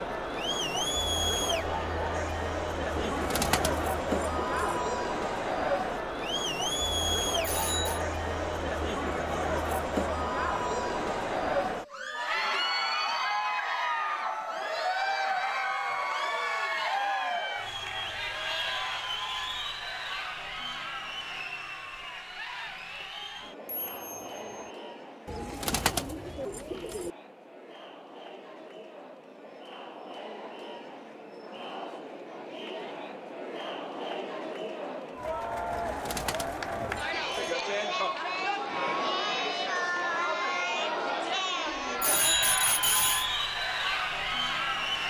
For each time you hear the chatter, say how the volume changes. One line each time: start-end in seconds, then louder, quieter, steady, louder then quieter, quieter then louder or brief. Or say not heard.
0.0-45.0 quieter then louder.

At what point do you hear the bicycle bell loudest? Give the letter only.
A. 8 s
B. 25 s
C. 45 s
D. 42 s
D.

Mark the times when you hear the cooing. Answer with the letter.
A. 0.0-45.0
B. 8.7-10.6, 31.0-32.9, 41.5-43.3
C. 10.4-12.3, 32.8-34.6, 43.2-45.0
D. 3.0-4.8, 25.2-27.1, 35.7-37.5
D.